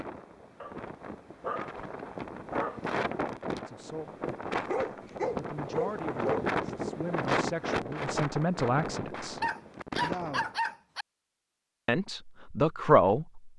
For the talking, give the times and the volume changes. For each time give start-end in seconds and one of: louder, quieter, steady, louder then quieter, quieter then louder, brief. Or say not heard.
3.6-4.1 brief
5.3-9.4 quieter then louder
11.8-13.5 brief.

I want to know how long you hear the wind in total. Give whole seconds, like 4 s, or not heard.
11 s.